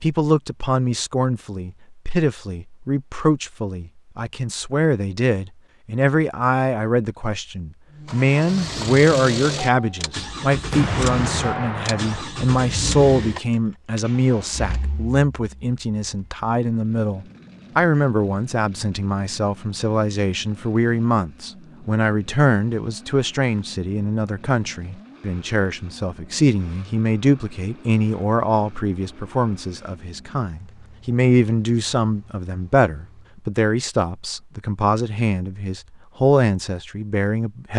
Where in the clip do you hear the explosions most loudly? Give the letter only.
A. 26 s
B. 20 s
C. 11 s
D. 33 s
C.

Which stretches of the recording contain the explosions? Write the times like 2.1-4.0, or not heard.
10.7-12.2.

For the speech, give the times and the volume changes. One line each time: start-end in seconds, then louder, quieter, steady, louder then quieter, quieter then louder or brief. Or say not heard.
0.0-37.7 steady.